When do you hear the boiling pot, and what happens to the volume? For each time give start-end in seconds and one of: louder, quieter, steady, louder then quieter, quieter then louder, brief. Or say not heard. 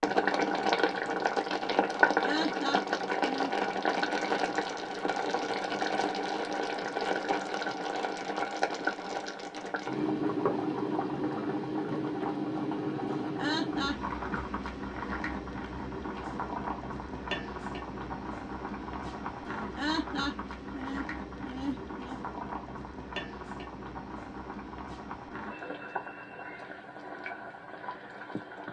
0.0-28.6 quieter.